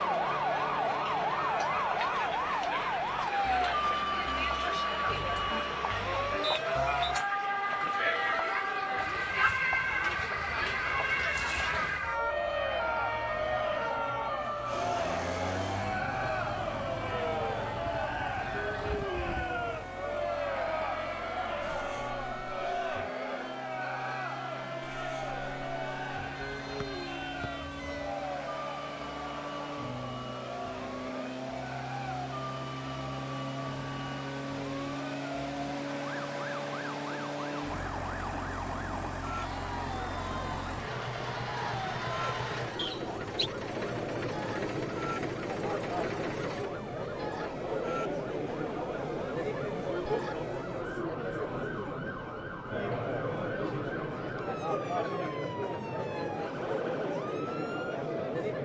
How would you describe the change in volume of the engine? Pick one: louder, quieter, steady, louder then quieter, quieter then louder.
louder.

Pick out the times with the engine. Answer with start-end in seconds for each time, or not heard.
14.7-46.7.